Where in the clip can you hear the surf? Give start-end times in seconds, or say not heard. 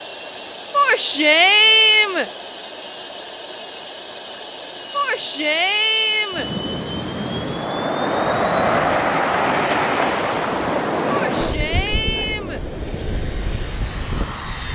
6.3-14.6.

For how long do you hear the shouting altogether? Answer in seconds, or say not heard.
5 s.